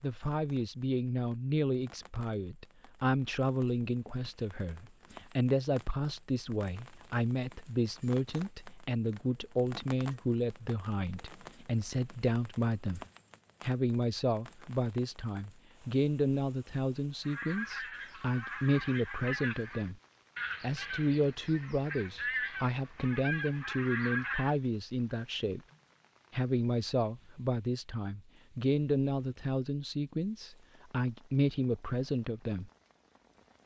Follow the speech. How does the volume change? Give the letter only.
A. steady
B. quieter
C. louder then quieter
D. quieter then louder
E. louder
A.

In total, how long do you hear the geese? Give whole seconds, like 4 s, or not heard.
7 s.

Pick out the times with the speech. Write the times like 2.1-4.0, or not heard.
0.0-20.0, 20.6-25.6, 26.3-32.7.